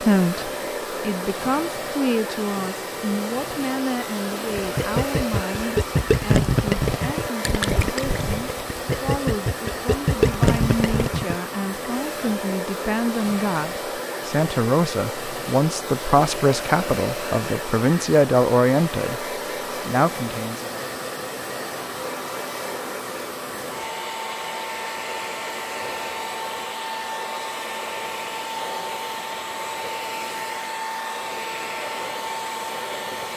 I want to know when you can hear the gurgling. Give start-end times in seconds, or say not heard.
4.5-11.3.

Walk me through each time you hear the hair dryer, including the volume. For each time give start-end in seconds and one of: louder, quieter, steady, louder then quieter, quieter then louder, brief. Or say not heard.
0.0-33.3 steady.